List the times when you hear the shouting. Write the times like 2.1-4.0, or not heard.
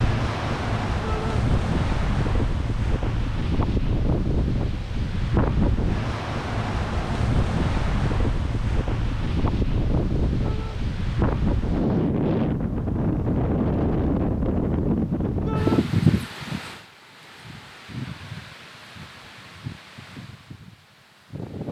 1.0-1.4, 10.4-10.8, 15.4-15.8.